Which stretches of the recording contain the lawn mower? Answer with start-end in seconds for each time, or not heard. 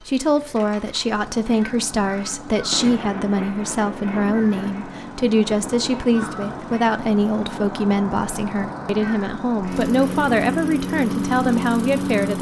0.0-12.3.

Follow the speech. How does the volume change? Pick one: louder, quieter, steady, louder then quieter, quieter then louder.
steady.